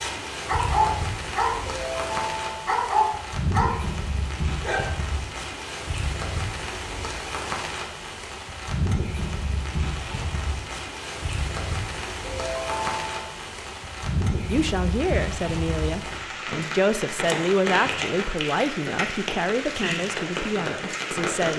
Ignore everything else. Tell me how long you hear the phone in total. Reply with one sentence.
You can hear the phone for 2 seconds altogether.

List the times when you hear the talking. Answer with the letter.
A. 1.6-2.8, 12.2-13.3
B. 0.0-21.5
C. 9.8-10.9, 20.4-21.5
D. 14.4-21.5
D.